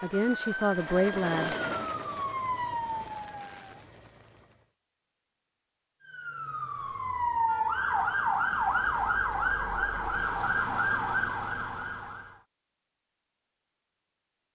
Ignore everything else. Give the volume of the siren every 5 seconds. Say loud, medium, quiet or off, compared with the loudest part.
medium, loud, loud.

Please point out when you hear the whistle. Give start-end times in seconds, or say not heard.
not heard.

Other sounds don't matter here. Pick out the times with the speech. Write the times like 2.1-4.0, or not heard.
0.0-1.6.